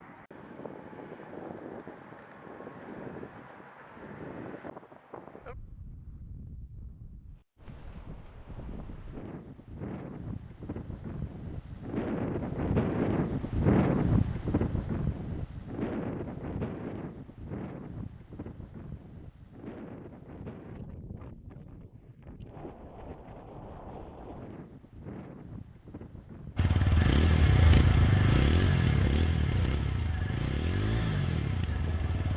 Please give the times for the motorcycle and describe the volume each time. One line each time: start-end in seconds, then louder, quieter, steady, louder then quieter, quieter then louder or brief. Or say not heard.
26.6-32.3 quieter.